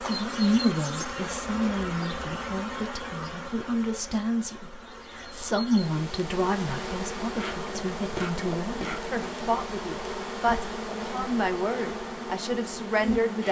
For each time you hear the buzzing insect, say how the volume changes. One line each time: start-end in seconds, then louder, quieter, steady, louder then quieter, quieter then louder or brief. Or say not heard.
0.0-13.4 quieter then louder.